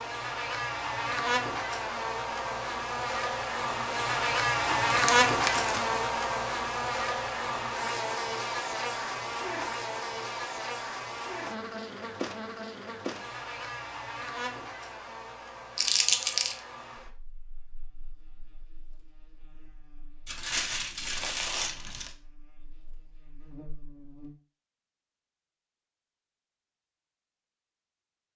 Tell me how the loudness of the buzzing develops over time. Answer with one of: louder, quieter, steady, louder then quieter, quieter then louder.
quieter.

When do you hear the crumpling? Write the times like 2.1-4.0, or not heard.
4.7-6.0, 15.8-16.6, 20.2-22.1.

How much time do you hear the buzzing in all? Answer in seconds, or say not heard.
24 s.